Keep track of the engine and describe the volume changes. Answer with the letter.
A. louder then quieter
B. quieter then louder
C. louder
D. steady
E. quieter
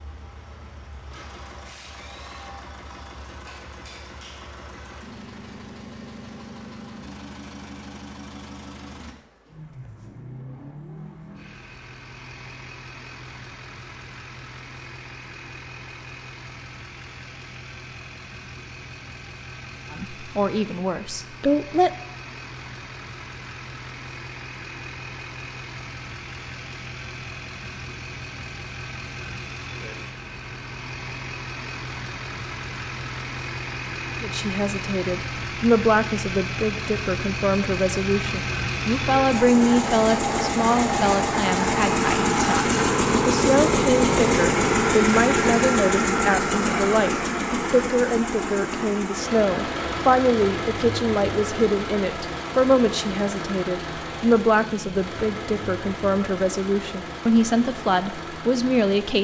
A.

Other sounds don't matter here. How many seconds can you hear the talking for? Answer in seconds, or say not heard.
27 s.